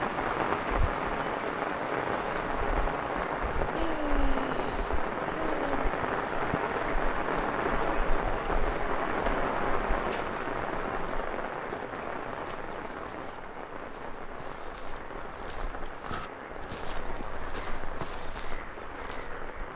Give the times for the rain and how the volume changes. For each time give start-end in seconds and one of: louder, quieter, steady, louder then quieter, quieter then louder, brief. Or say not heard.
0.0-19.7 quieter.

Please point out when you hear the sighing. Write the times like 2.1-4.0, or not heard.
3.7-5.9, 15.7-16.3.